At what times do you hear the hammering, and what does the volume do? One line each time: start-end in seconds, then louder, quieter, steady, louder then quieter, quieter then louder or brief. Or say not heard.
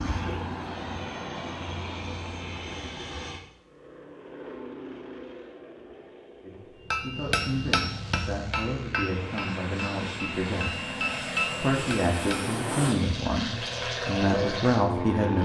6.9-12.4 quieter then louder.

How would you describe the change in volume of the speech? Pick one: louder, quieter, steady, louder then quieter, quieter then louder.
louder.